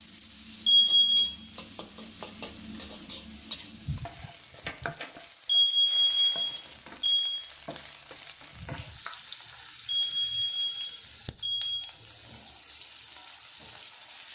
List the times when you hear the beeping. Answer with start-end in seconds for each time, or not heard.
0.7-1.3, 5.5-7.4, 10.1-11.8.